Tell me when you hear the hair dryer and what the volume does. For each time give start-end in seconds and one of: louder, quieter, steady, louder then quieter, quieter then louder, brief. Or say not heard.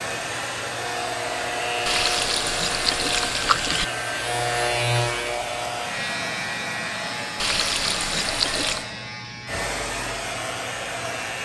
0.0-11.4 steady.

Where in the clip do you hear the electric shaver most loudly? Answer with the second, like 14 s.
5 s.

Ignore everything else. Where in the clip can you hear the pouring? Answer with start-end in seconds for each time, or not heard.
1.9-3.9, 7.3-8.9.